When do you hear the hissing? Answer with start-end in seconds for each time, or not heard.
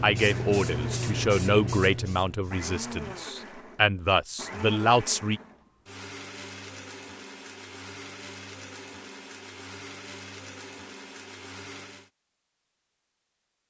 0.0-3.1.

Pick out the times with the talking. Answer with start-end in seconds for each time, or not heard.
0.0-5.4.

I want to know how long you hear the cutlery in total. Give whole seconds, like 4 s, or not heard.
not heard.